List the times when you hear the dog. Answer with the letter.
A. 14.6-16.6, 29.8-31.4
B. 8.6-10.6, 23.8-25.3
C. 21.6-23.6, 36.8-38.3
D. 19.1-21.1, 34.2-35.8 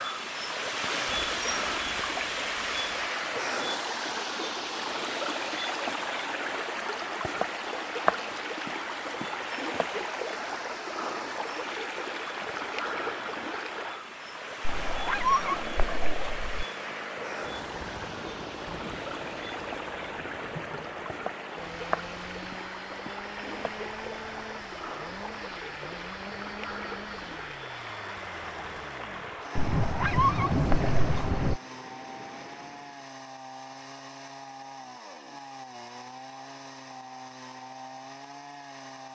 A.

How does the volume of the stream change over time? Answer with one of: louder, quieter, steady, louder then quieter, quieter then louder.
quieter.